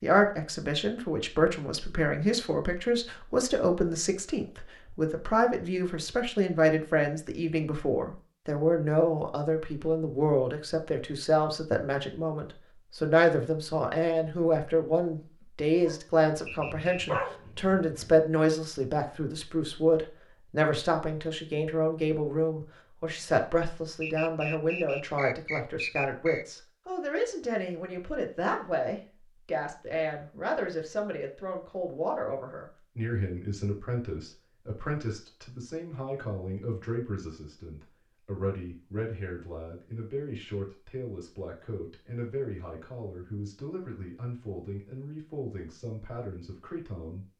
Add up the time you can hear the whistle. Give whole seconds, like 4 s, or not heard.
3 s.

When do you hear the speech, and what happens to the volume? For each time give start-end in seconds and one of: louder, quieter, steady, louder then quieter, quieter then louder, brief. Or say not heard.
0.0-47.2 quieter.